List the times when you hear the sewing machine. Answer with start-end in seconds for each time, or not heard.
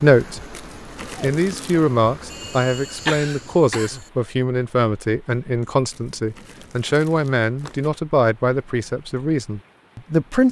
not heard.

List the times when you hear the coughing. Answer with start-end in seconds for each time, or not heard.
2.3-4.1.